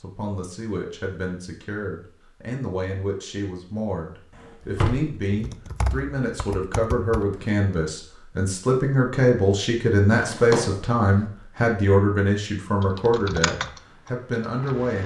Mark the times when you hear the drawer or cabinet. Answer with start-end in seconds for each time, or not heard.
4.3-5.2, 10.1-10.9.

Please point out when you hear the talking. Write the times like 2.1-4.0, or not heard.
0.0-15.0.